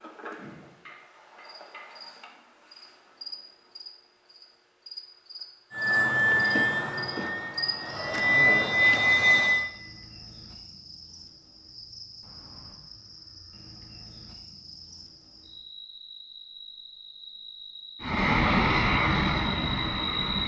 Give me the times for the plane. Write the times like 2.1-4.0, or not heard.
5.8-9.7, 18.0-20.4.